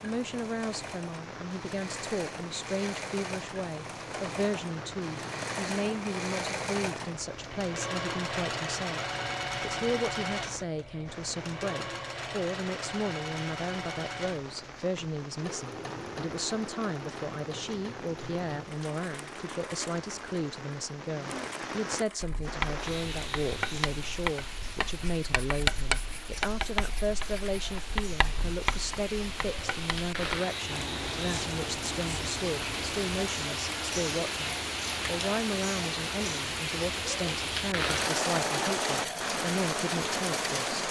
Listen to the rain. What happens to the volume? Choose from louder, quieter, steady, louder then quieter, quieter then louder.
louder.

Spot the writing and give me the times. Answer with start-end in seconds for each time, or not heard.
22.2-33.3.